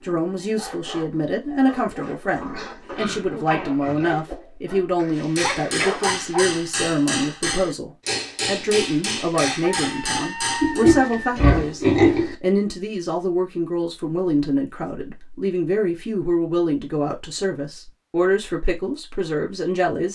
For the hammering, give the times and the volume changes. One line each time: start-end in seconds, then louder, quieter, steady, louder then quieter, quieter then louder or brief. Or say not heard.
5.2-10.8 steady.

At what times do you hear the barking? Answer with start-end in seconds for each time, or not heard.
0.0-6.6.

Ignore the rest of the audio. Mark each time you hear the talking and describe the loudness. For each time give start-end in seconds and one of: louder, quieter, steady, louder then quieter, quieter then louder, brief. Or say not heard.
0.0-20.0 steady.